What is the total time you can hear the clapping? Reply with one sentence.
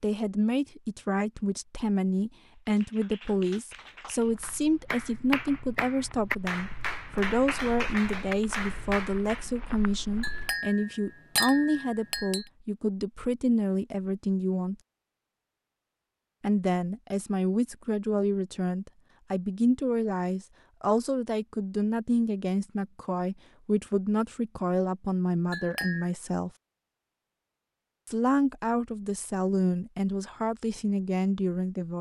You can hear the clapping for 7 seconds altogether.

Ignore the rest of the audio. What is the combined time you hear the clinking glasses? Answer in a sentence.
The clinking glasses can be heard for 3 seconds in total.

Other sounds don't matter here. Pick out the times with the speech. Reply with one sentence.
You can hear the speech from 0.0 to 14.8 s, from 16.4 to 26.5 s and from 28.1 to 31.9 s.